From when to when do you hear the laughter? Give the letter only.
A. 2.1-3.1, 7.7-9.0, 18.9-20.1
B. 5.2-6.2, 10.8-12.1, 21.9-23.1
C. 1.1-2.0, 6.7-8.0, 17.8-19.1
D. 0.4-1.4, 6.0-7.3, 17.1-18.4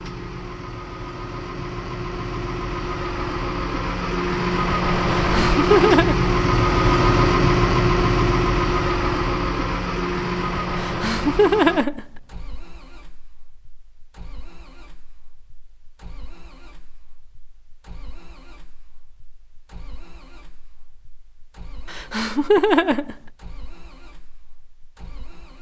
B.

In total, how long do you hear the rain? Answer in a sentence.
The rain can't be heard in this clip.